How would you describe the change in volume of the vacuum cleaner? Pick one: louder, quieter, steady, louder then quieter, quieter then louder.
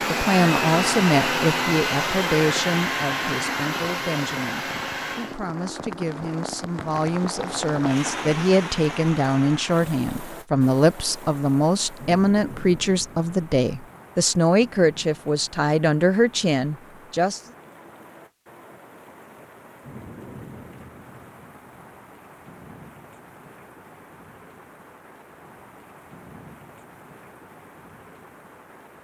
quieter.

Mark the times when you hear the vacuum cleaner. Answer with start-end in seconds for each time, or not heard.
0.0-5.4.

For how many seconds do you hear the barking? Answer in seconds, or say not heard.
not heard.